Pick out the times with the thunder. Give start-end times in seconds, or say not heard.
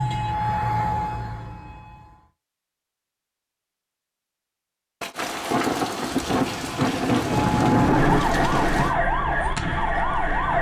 5.0-8.9.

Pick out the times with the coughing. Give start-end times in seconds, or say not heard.
not heard.